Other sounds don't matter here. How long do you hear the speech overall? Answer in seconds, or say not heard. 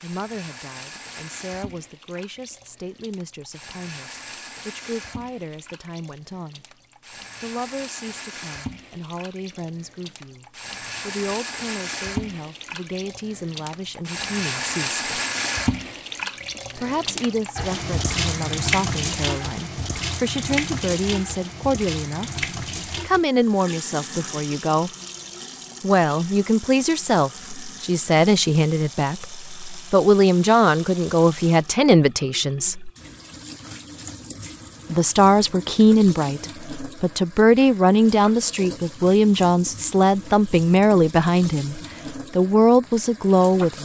38 s.